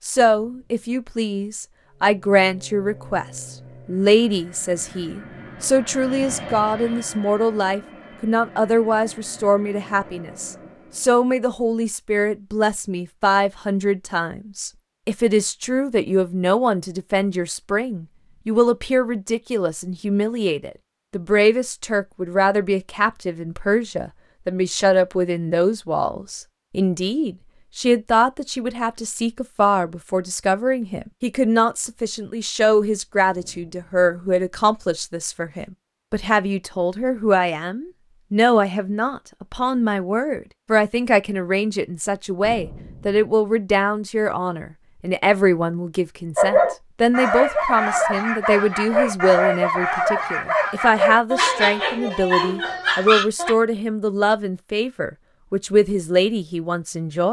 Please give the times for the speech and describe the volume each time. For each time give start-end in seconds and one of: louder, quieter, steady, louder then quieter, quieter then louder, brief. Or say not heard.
0.0-57.2 steady.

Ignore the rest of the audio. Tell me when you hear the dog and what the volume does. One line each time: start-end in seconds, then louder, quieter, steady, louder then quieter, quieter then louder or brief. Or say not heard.
46.4-53.5 steady.